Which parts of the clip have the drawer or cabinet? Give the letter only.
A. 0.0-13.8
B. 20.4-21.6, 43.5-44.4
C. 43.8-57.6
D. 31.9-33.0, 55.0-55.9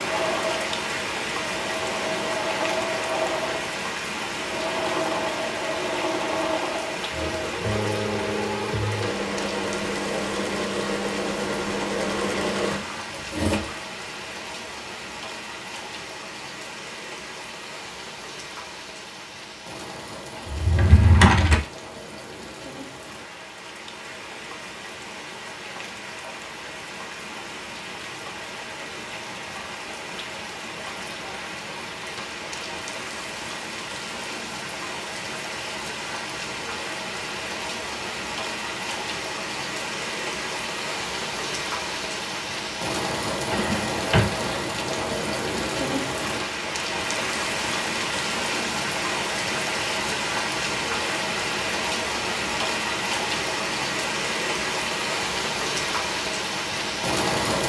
B.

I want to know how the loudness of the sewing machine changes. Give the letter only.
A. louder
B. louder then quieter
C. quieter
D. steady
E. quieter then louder
D.